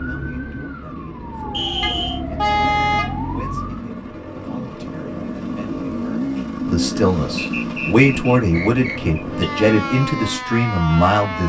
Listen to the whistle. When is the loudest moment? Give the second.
2 s.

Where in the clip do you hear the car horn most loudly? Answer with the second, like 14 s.
3 s.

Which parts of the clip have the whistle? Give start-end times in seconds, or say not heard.
1.5-2.2, 7.3-9.0.